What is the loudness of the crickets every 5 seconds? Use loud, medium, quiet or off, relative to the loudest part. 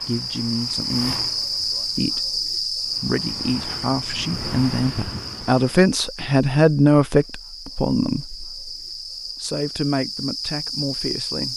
loud, medium, loud.